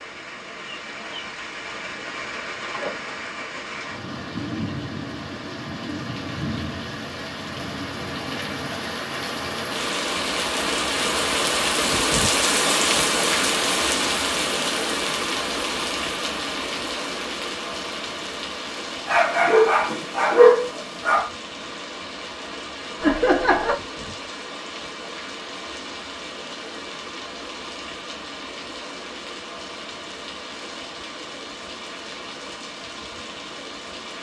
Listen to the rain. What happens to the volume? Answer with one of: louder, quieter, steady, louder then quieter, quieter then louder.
louder then quieter.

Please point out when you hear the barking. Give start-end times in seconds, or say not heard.
19.1-21.3.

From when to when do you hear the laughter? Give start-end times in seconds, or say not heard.
23.0-23.8.